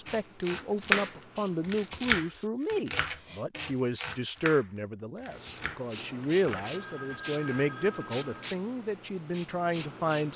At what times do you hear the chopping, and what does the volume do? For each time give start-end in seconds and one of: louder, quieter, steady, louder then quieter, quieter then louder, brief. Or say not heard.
0.1-7.7 quieter.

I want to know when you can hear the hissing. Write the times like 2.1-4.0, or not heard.
0.0-2.2, 5.3-10.3.